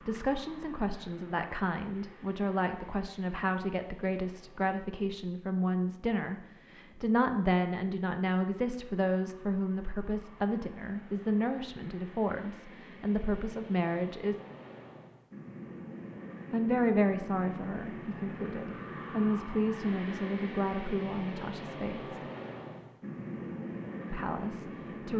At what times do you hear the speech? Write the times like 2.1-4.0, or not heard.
0.1-14.3, 16.5-22.1, 24.1-25.1.